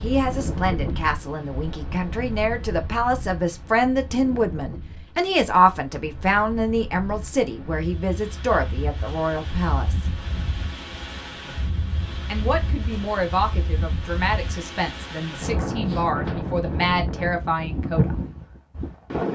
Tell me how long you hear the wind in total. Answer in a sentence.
The wind can be heard for 19 seconds in total.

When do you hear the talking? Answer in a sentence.
You can hear the talking from 0.0 to 10.1 s and from 12.2 to 18.1 s.